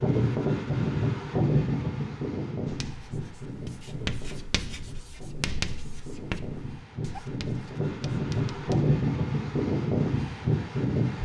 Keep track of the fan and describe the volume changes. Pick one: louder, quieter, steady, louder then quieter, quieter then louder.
quieter then louder.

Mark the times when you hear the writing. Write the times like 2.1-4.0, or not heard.
2.6-8.9.